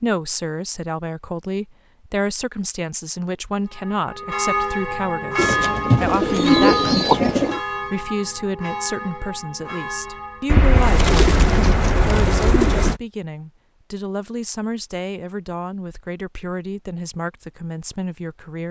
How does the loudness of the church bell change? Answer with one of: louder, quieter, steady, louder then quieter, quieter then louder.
quieter.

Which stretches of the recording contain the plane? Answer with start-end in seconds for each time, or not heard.
not heard.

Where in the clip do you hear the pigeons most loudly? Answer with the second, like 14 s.
7 s.